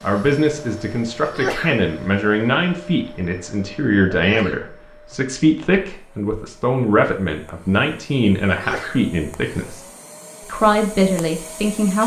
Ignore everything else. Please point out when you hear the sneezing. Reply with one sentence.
You can hear the sneezing from 1.2 to 1.9 s, from 4.1 to 4.8 s and from 8.4 to 9.1 s.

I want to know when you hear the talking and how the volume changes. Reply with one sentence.
The talking can be heard from 0.0 to 9.8 s, at a steady volume; and briefly from 10.4 to 12.0 s.